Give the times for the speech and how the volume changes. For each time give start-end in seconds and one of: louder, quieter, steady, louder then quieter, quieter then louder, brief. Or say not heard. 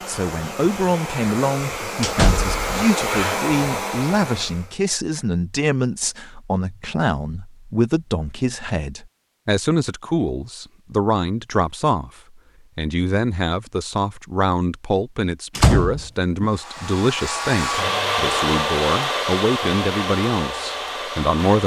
0.1-21.6 steady.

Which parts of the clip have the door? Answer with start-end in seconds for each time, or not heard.
2.0-2.6, 15.6-16.4.